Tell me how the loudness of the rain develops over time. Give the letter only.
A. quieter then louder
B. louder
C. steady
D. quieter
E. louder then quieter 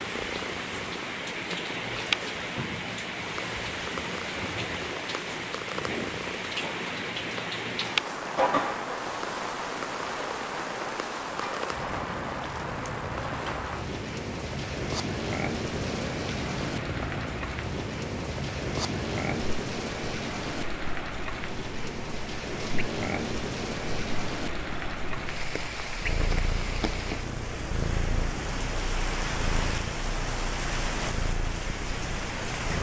C.